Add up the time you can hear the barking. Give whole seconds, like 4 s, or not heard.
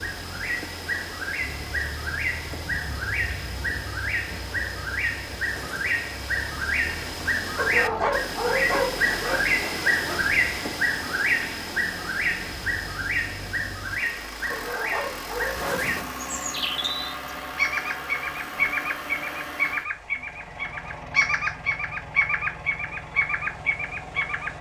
4 s.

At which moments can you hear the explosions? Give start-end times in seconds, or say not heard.
5.5-6.1, 15.6-16.2.